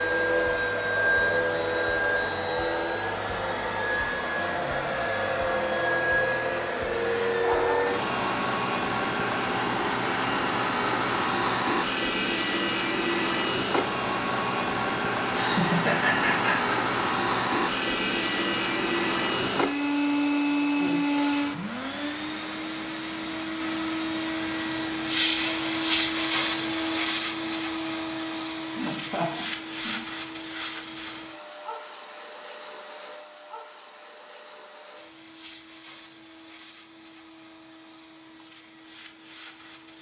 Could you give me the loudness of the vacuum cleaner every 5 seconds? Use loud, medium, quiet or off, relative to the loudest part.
loud, loud, loud, loud, loud, loud, quiet, quiet.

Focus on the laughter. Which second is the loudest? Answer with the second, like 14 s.
16 s.